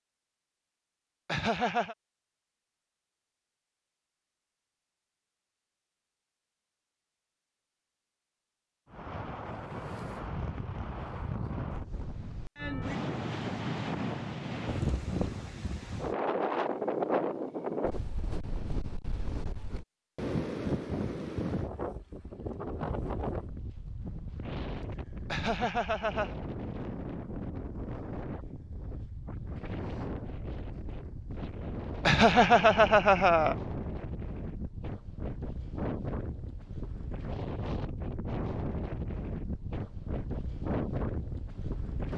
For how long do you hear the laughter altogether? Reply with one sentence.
You can hear the laughter for 3 seconds altogether.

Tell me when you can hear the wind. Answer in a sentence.
You can hear the wind from 8.8 to 42.1 s.